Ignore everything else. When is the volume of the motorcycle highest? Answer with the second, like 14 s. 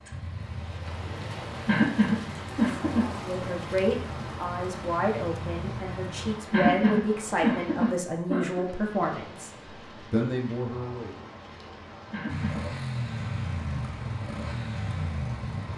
13 s.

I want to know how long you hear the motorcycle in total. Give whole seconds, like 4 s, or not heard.
10 s.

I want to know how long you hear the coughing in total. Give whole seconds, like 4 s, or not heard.
4 s.